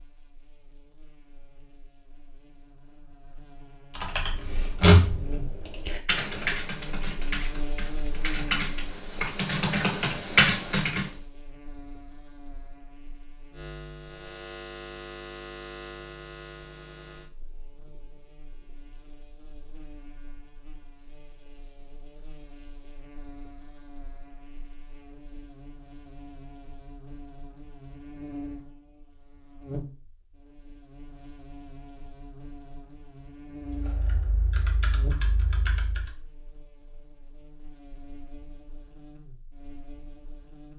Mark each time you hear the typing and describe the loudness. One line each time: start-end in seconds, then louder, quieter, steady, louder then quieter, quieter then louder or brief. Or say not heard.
4.0-11.1 quieter then louder
33.6-36.0 brief.